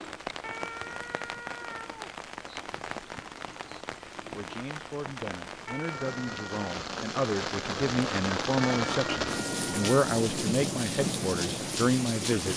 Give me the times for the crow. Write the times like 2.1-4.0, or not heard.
not heard.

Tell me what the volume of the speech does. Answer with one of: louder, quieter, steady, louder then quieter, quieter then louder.
louder.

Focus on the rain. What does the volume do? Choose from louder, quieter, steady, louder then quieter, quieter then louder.
louder.